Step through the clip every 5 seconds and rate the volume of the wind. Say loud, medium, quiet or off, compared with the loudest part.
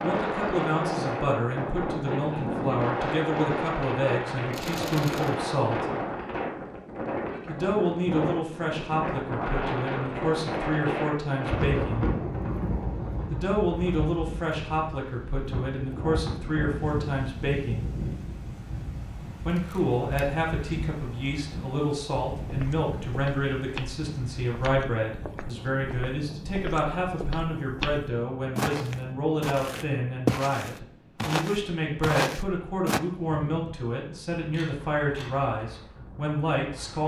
loud, loud, loud, medium, medium, quiet, quiet, quiet.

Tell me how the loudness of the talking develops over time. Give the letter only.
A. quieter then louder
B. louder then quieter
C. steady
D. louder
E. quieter
C.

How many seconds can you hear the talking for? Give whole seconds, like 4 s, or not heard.
33 s.